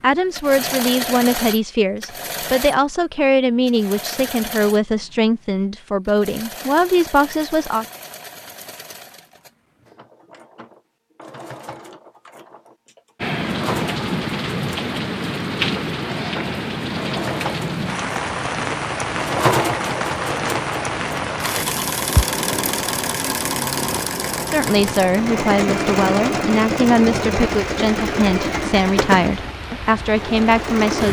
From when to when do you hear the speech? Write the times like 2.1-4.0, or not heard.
0.0-7.8, 24.5-31.0.